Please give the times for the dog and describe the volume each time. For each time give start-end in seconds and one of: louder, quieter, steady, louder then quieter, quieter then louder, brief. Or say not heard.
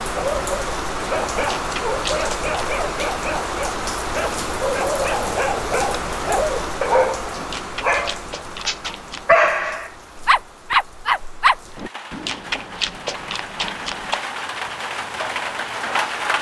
0.1-11.9 louder.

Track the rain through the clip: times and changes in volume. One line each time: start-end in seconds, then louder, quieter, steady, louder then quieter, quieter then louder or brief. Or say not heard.
0.0-16.3 quieter then louder.